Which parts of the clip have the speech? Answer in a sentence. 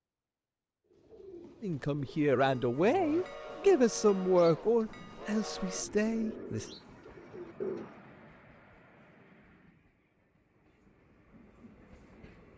The speech can be heard from 1.6 to 6.7 s.